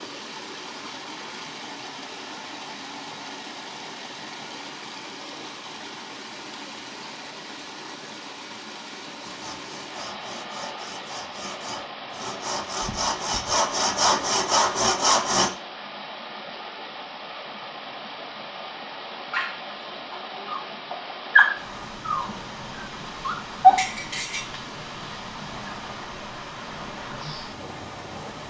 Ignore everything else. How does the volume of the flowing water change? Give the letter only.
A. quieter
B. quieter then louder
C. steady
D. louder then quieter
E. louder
C.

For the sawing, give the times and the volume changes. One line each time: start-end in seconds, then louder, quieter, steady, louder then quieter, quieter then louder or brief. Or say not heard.
9.2-15.5 louder.